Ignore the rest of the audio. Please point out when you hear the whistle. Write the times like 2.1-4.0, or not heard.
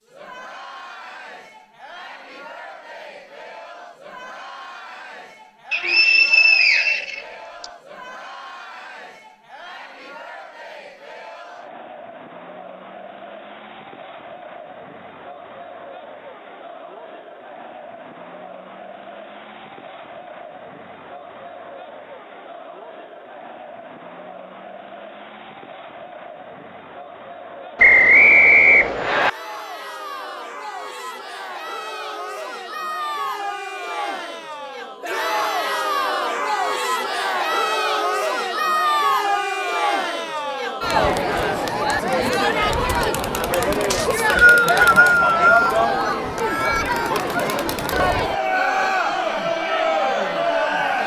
5.7-7.7, 27.8-29.3, 43.9-45.8.